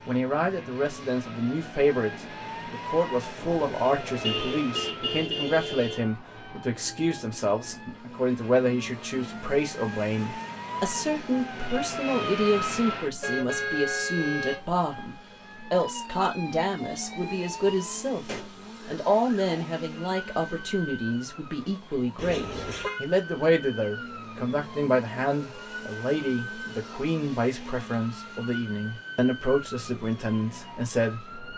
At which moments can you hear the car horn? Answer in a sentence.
The car horn can be heard from 3.4 to 6.0 s, from 13.2 to 14.7 s and from 22.1 to 23.0 s.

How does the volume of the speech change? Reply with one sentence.
The loudness of the speech stays about the same.